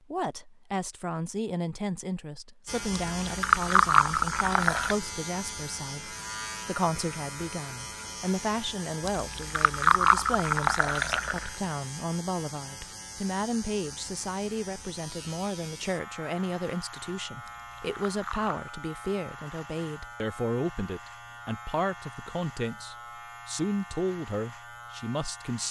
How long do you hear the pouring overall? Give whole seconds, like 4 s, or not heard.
6 s.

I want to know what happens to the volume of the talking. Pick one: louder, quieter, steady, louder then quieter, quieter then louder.
steady.